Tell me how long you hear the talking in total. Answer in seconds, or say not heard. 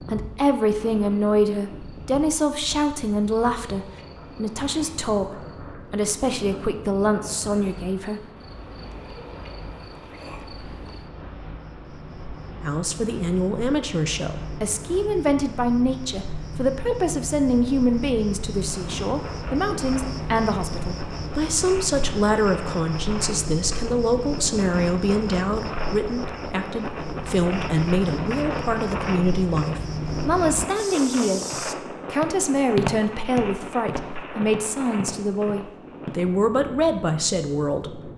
34 s.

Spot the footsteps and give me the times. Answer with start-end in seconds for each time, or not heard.
30.8-36.2.